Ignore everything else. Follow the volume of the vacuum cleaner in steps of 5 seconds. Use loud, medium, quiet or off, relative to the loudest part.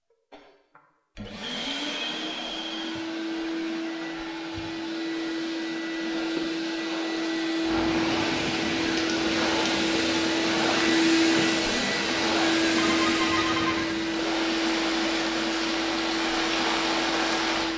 medium, loud, loud, medium.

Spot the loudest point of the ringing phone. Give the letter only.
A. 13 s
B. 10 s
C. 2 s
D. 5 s
A.